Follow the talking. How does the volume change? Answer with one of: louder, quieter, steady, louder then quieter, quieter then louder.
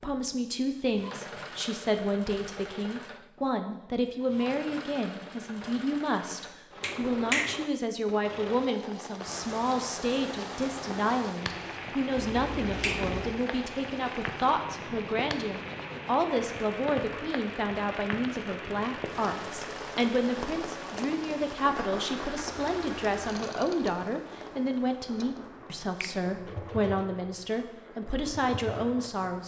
steady.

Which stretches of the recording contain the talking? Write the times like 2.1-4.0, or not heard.
0.0-29.4.